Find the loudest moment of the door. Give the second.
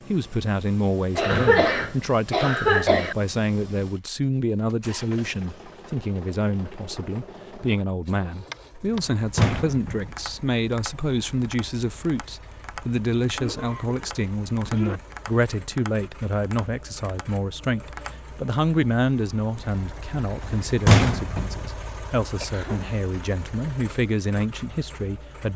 21 s.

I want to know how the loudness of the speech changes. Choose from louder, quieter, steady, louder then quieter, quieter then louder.
steady.